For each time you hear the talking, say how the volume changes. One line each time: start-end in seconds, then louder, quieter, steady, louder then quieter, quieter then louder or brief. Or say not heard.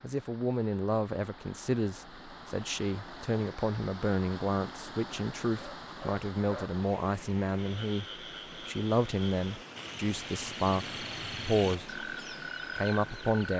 0.0-12.0 steady
12.8-13.5 brief.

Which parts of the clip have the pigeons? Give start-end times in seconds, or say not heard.
not heard.